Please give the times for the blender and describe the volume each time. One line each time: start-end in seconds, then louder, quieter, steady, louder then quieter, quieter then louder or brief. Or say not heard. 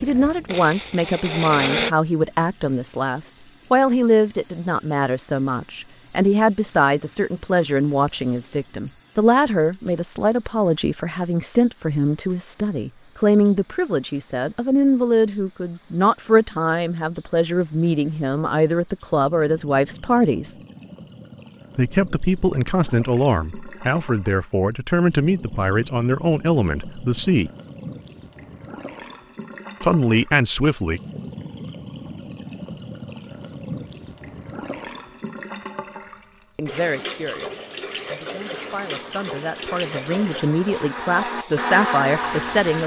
0.0-1.9 brief
38.8-42.8 louder.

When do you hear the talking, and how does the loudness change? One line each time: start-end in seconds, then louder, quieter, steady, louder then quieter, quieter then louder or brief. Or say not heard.
0.0-20.6 steady
21.8-27.5 steady
29.8-31.0 brief
36.5-42.8 louder.